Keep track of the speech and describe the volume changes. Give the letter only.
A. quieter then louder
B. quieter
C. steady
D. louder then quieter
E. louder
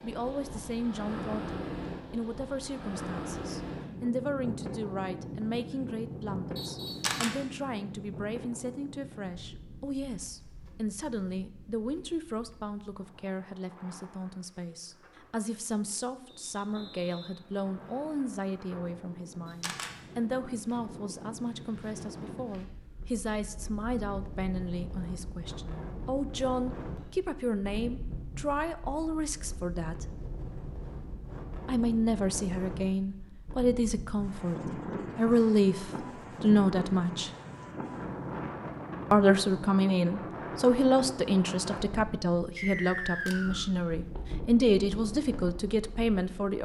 E.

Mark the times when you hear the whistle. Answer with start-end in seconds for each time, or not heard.
6.5-7.1, 16.5-18.3, 42.5-43.7.